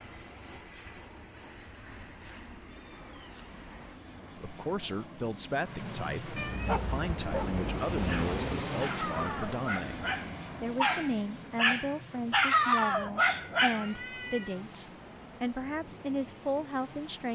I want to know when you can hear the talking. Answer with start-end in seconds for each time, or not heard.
4.3-17.3.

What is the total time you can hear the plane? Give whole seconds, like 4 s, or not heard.
17 s.